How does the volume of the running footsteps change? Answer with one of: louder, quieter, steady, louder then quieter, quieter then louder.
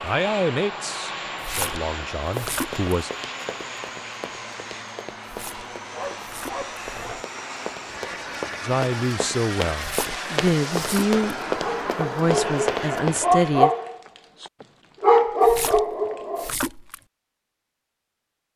louder.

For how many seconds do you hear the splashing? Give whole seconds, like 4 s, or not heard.
6 s.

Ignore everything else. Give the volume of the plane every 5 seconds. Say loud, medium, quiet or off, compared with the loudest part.
loud, loud, loud, off.